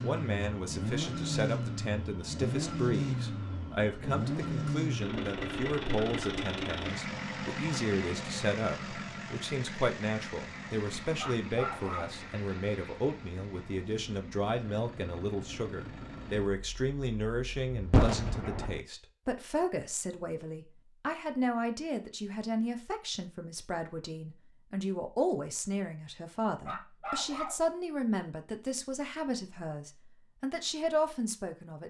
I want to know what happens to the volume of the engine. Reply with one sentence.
The loudness of the engine goes down.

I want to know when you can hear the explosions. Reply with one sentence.
The explosions can be heard from 17.9 to 18.8 s.